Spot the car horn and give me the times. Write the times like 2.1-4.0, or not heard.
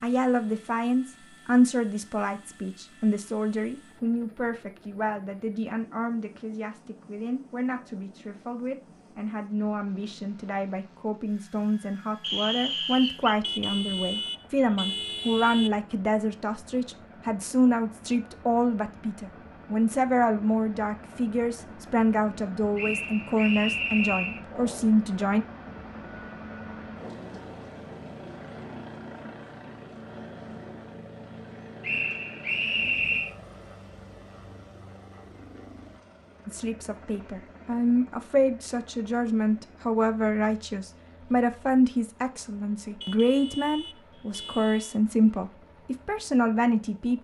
13.4-15.8, 43.0-45.0.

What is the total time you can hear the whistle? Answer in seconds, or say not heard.
4 s.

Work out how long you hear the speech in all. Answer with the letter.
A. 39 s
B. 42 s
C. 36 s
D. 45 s
C.